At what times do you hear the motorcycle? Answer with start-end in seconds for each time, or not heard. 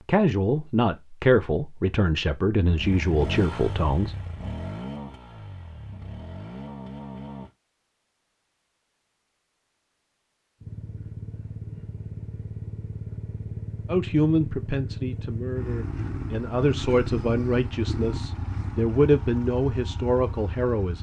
2.6-7.5, 10.6-20.9.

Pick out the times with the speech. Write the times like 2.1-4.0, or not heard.
0.1-4.2, 13.8-20.9.